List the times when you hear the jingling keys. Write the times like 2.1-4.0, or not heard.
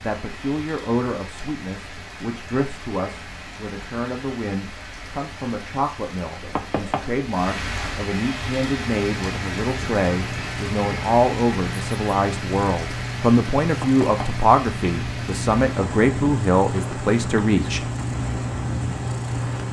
not heard.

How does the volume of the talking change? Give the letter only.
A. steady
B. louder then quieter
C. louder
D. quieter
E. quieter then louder
C.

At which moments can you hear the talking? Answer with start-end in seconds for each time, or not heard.
0.0-17.9.